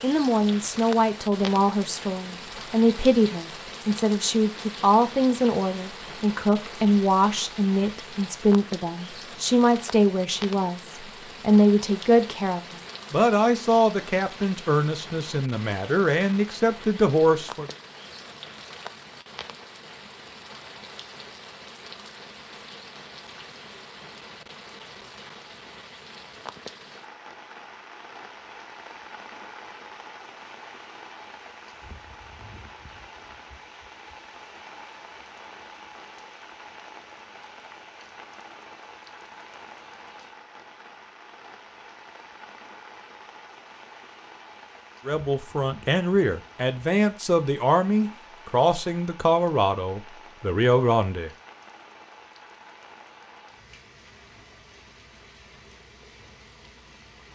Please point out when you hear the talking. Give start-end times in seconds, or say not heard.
0.0-17.7, 45.0-51.3.